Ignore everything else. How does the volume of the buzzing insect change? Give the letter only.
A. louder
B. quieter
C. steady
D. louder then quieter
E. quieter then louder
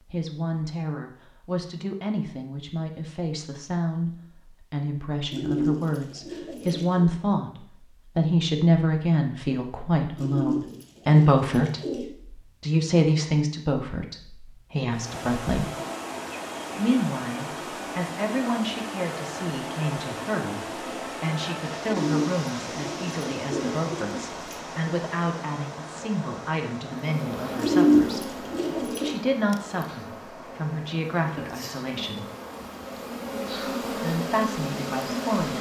E.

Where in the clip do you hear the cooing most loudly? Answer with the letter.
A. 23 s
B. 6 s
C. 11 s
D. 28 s
D.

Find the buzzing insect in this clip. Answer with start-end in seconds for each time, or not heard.
26.9-35.5.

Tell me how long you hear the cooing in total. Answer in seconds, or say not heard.
8 s.